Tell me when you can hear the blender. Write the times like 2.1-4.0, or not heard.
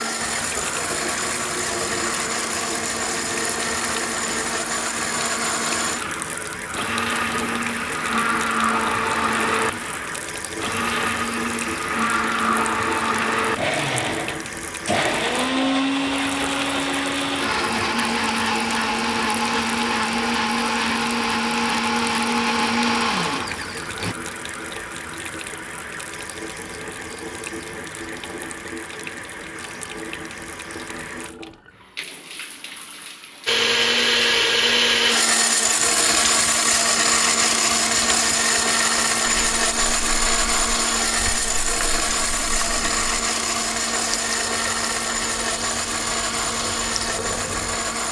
0.0-24.1, 33.5-48.0.